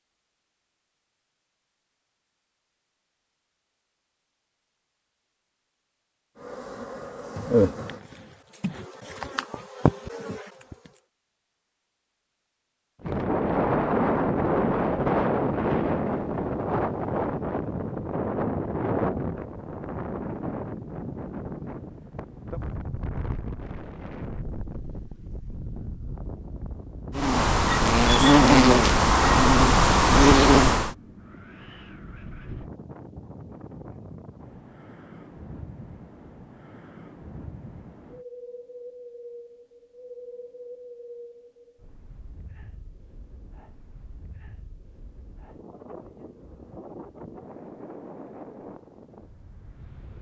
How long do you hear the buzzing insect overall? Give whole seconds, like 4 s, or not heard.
8 s.